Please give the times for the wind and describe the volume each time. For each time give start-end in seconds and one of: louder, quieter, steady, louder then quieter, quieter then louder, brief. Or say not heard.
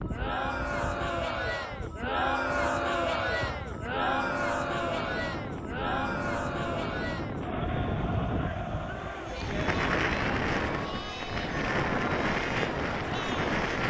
0.0-13.8 louder.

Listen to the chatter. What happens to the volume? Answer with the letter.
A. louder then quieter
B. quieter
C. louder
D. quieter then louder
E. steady
B.